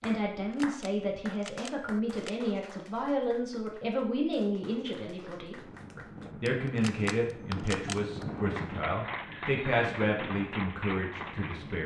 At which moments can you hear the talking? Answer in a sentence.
The talking can be heard from 0.0 to 11.8 s.